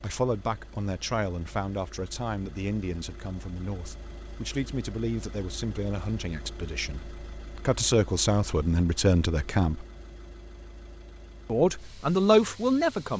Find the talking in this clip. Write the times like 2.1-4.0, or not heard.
0.0-9.8, 11.5-13.1.